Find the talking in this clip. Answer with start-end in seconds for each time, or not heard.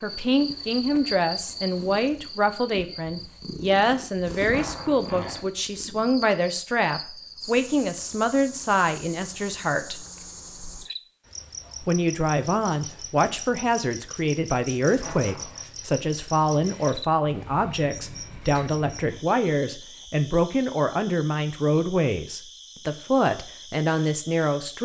0.0-10.1, 11.8-24.8.